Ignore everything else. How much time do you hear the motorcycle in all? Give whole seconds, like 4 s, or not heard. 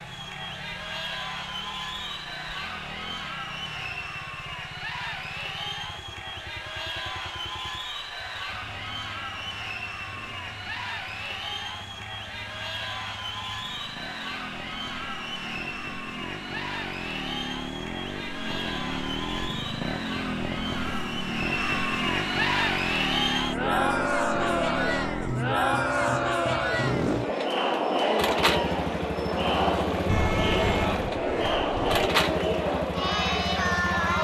34 s.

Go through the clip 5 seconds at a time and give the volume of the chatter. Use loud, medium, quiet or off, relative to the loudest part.
medium, medium, medium, medium, loud, loud, loud.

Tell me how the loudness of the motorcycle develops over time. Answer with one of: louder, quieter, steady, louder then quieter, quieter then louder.
louder.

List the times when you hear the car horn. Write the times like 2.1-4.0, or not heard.
30.1-31.9.